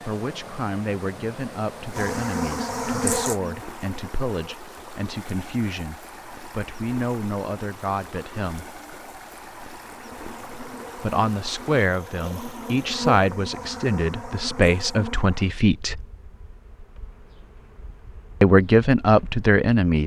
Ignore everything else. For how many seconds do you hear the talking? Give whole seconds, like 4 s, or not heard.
15 s.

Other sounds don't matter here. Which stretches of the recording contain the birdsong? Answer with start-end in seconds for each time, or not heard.
not heard.